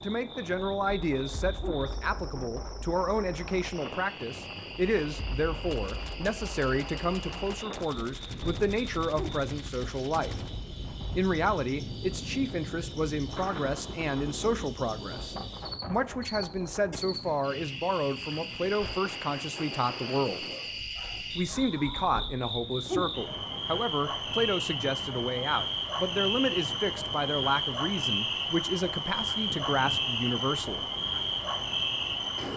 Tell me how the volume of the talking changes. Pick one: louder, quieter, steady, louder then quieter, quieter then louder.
steady.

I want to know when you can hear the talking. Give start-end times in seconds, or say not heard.
0.0-10.3, 11.1-20.4, 21.4-30.9.